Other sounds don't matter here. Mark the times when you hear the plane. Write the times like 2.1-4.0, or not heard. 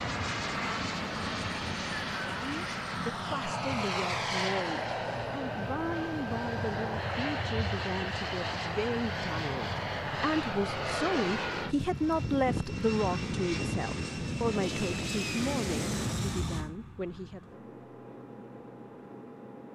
0.0-19.6.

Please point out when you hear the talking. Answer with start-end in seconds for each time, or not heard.
2.1-17.6.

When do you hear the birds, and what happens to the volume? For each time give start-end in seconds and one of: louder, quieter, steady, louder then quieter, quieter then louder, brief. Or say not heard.
not heard.